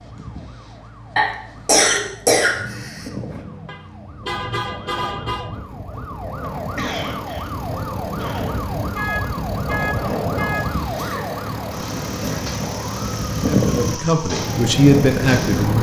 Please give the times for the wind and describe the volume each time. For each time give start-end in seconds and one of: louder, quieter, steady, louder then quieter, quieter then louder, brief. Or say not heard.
0.0-15.7 louder.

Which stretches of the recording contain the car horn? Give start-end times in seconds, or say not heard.
3.6-5.5, 8.9-10.8.